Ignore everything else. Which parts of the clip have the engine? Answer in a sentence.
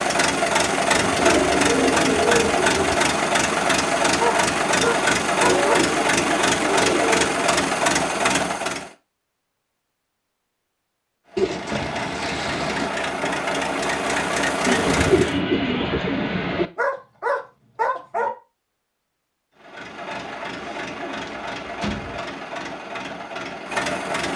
You can hear the engine from 0.0 to 8.9 s, from 11.2 to 15.4 s and from 19.6 to 24.3 s.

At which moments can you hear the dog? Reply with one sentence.
The dog can be heard from 4.2 to 5.8 s and from 16.8 to 18.3 s.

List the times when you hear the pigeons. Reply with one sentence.
The pigeons can be heard from 0.9 to 3.0 s, from 5.7 to 7.2 s, from 11.3 to 12.9 s, from 14.7 to 16.7 s and from 20.6 to 22.2 s.